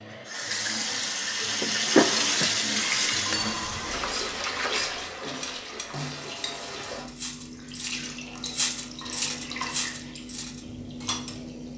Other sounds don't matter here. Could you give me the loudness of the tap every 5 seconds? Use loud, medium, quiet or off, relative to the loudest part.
loud, medium, quiet.